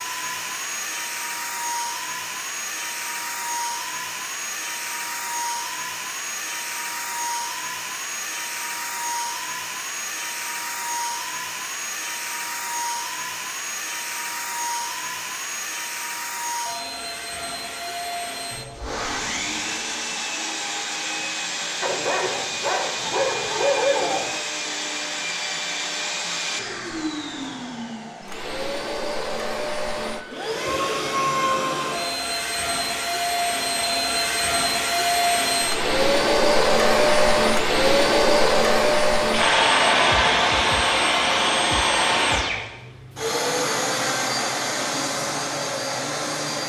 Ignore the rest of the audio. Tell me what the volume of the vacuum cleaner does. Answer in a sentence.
The loudness of the vacuum cleaner goes up.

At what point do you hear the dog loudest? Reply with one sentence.
The volume of the dog peaks at 24 seconds.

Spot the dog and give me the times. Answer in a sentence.
The dog can be heard from 21.8 to 24.4 s.